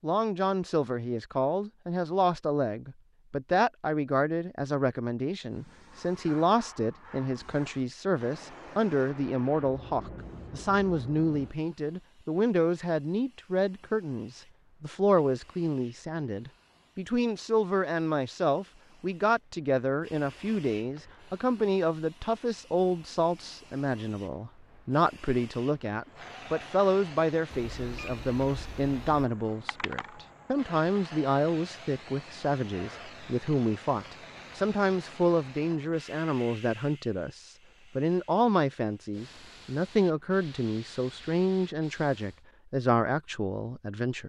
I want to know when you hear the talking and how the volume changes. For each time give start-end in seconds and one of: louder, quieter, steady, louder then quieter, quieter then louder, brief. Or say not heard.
0.0-44.2 steady.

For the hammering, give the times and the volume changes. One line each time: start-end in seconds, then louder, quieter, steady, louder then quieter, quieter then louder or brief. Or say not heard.
not heard.